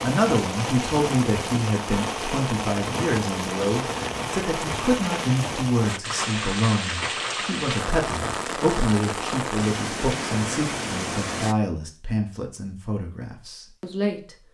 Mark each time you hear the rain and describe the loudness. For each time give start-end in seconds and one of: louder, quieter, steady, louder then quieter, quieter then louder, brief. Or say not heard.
0.0-11.6 steady.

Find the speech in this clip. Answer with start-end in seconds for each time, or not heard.
0.0-14.3.